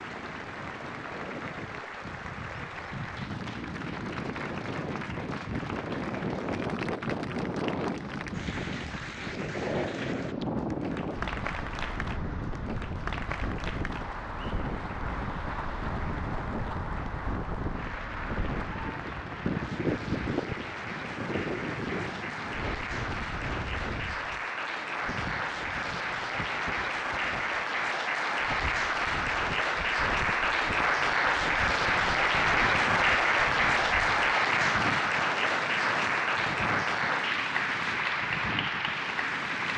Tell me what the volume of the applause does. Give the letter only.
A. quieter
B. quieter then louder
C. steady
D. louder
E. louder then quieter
D.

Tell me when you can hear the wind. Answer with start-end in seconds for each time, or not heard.
0.0-39.7.